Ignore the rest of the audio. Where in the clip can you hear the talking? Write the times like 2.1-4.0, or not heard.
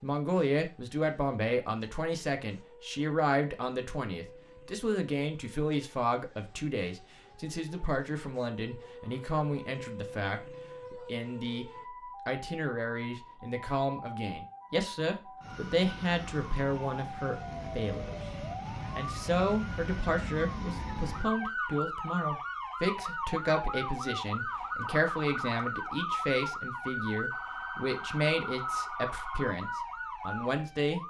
0.0-18.1, 18.9-31.0.